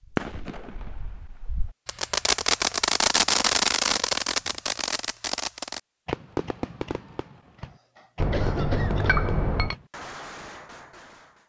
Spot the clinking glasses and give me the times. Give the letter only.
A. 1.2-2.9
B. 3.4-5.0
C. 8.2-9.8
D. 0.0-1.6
C.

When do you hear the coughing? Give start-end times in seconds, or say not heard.
7.6-9.3.